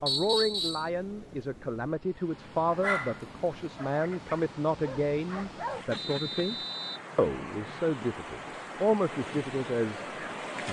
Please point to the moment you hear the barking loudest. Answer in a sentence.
The volume of the barking peaks at 3 seconds.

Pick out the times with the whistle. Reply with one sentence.
The whistle can be heard from 0.1 to 0.9 s and from 6.0 to 7.0 s.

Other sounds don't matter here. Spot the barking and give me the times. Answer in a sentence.
You can hear the barking from 2.6 to 5.9 s.